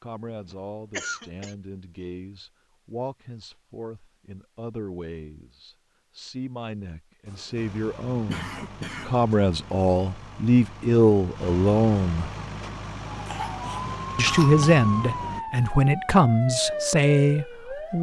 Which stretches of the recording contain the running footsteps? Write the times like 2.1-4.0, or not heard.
not heard.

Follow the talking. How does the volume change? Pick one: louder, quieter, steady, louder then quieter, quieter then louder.
louder.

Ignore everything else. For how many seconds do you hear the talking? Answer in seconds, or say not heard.
16 s.